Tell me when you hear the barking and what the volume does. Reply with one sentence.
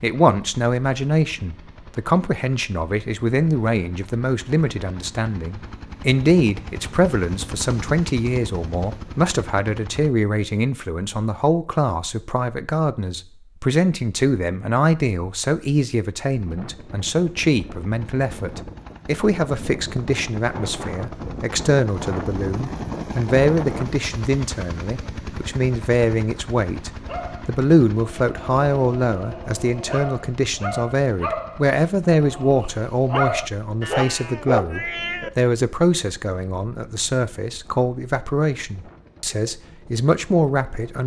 You can hear the barking from 27.0 to 35.3 s, getting louder.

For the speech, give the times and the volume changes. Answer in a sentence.
You can hear the speech from 0.0 to 41.0 s, at a steady volume.